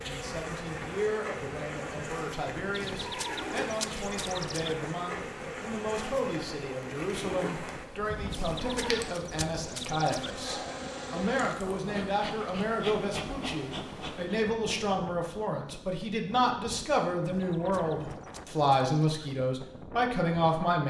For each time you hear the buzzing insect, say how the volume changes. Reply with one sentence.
The buzzing insect can be heard from 0.0 to 14.4 s, at a steady volume.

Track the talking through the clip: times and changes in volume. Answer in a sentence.
The talking can be heard from 0.0 to 20.8 s, getting louder.